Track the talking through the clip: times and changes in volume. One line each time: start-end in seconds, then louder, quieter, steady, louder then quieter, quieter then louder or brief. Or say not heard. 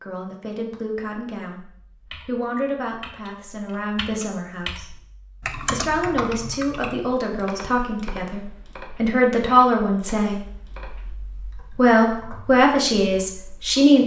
0.0-1.6 brief
2.2-14.0 louder.